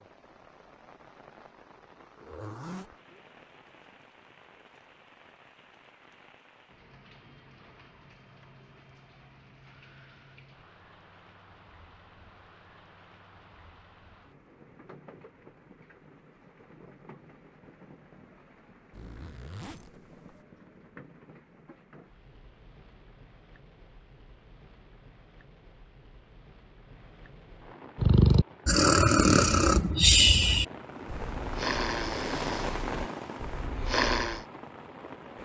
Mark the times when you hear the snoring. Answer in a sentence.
You can hear the snoring from 27.9 to 34.5 s.